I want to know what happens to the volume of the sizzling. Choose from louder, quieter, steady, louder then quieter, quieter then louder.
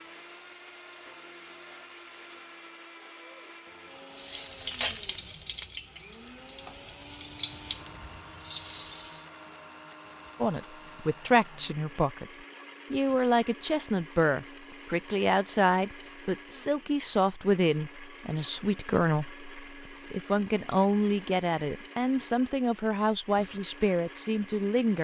quieter then louder.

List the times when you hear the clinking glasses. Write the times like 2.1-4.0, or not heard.
not heard.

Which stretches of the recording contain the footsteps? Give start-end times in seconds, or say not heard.
not heard.